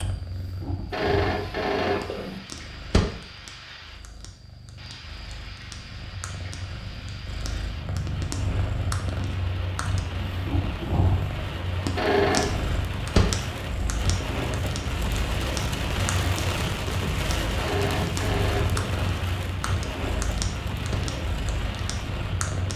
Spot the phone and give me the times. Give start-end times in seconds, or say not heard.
0.9-2.4, 11.9-12.6, 17.6-18.9.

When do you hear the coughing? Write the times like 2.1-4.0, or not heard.
not heard.